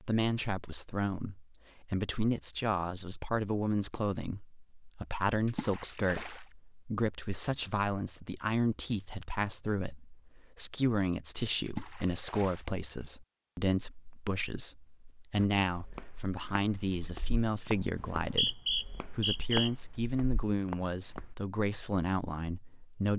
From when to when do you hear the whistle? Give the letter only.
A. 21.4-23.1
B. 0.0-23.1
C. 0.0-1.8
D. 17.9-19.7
D.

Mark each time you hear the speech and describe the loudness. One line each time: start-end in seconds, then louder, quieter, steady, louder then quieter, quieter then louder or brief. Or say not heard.
0.0-23.1 steady.